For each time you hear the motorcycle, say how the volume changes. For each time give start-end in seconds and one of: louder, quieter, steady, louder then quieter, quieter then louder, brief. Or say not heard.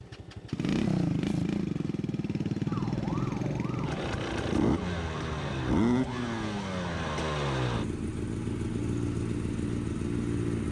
0.0-10.6 steady.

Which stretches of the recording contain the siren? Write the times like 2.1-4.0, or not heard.
2.6-7.1.